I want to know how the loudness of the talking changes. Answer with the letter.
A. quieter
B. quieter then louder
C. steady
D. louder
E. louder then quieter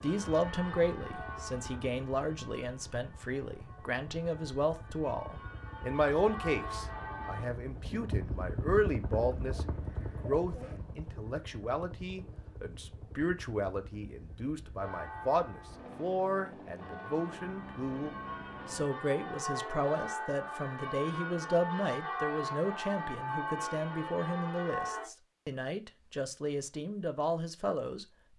C.